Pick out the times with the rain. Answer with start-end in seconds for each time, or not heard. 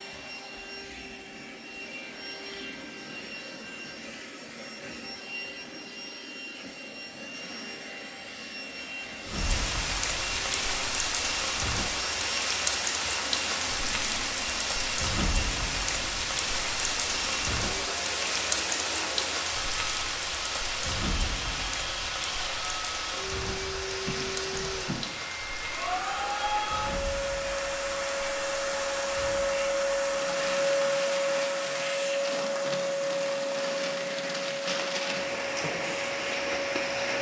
9.2-37.1.